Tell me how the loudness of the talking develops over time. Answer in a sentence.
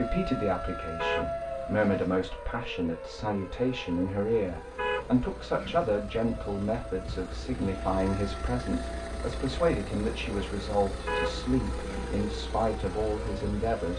The loudness of the talking stays about the same.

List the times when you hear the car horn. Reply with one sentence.
The car horn can be heard from 0.9 to 2.2 s, from 4.8 to 6.0 s and from 11.1 to 12.2 s.